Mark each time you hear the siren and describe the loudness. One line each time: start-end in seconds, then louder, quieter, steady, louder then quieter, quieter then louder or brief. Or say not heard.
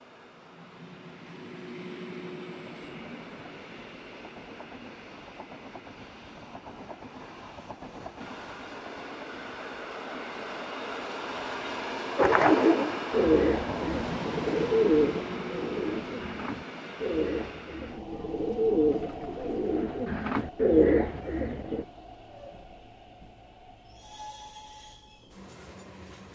not heard.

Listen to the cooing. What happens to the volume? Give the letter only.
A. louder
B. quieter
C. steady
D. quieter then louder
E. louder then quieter
D.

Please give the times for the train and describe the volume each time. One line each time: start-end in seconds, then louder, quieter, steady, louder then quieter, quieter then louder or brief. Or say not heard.
0.0-26.3 louder then quieter.